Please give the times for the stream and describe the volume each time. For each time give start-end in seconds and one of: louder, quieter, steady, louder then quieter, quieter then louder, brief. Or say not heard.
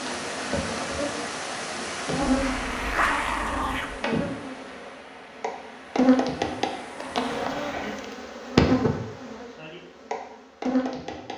0.0-7.3 quieter.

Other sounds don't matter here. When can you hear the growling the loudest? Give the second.
3 s.